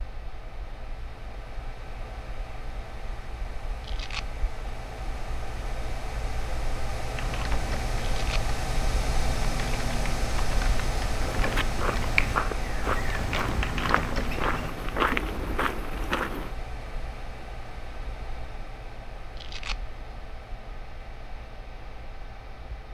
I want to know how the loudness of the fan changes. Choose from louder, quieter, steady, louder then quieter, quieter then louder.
louder then quieter.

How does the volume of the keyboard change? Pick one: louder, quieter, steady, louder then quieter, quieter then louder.
louder.